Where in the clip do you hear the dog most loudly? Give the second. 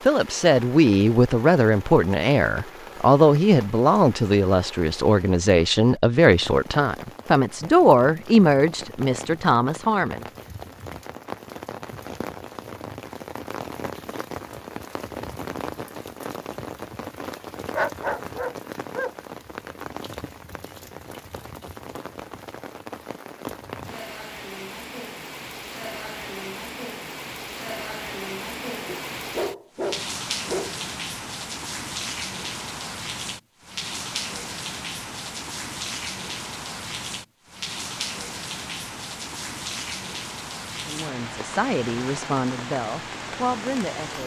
18 s.